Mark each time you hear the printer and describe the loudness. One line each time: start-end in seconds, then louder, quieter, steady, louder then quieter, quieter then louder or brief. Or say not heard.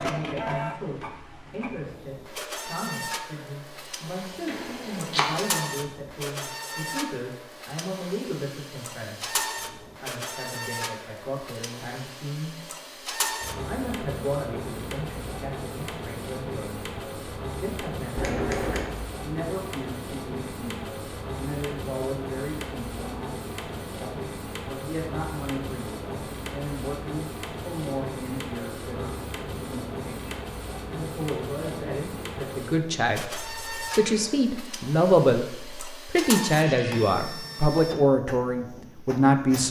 0.0-39.6 steady.